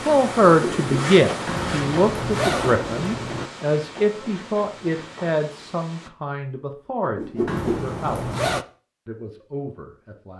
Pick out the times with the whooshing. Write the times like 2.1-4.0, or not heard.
0.5-1.1, 7.2-7.8.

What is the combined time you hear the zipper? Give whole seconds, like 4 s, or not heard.
3 s.